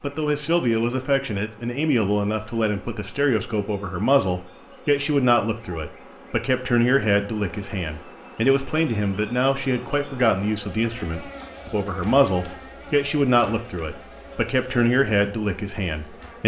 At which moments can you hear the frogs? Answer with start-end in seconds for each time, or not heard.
not heard.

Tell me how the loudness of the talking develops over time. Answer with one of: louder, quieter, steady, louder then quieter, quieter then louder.
steady.